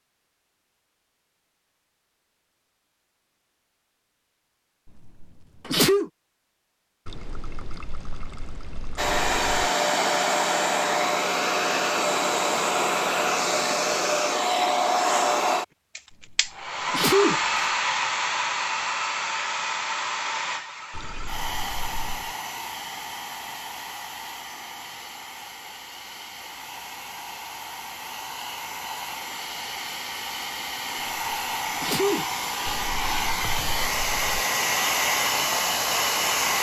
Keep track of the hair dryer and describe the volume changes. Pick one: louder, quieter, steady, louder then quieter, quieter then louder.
quieter then louder.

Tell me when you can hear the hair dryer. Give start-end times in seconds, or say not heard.
8.9-36.5.